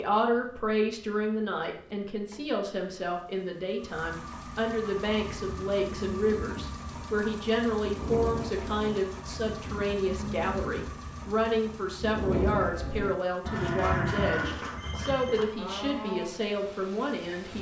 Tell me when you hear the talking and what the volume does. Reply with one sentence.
The talking can be heard from 0.0 to 17.5 s, at a steady volume.